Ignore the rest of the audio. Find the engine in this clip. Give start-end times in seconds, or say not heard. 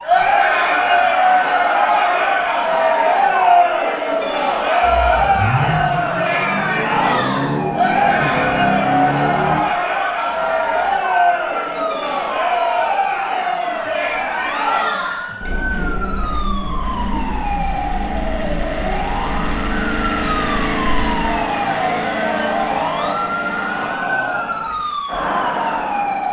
4.8-9.7, 16.8-23.9.